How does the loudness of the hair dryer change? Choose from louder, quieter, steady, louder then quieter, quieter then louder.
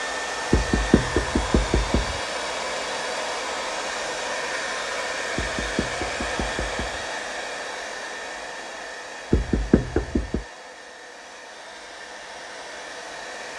quieter.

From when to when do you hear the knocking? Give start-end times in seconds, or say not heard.
0.5-2.2, 5.3-7.0, 9.3-10.4.